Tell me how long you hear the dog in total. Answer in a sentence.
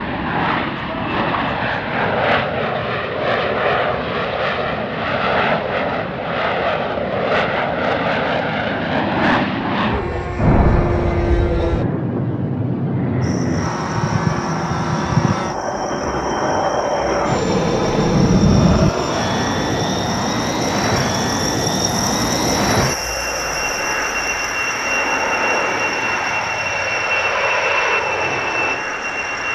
You can't hear the dog here.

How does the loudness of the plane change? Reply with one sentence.
The volume of the plane stays about the same.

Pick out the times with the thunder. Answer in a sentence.
You can hear the thunder from 10.3 to 11.7 s and from 17.2 to 18.9 s.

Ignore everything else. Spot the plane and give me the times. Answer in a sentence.
The plane can be heard from 0.0 to 29.5 s.